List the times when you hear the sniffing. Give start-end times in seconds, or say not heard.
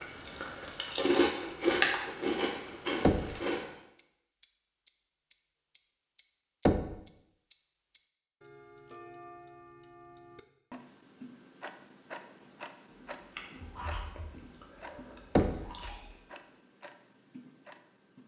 not heard.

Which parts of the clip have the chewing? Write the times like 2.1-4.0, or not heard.
0.0-3.6, 13.2-16.1.